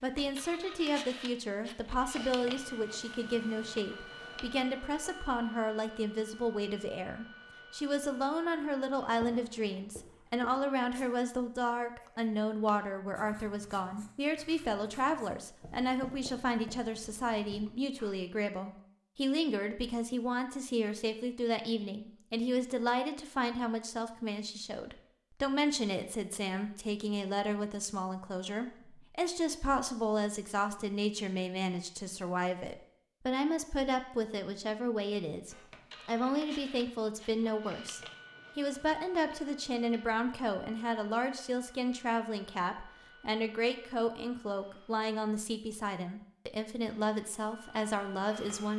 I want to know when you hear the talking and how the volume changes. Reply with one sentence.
You can hear the talking from 0.0 to 48.7 s, at a steady volume.